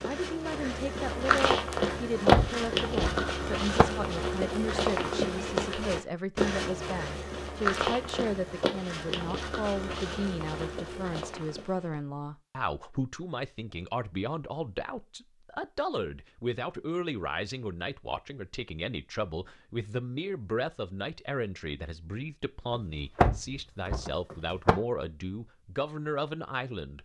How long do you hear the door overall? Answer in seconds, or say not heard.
4 s.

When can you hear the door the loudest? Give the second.
2 s.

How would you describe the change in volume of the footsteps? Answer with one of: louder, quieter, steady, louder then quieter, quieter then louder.
quieter.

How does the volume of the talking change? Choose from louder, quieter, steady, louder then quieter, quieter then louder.
steady.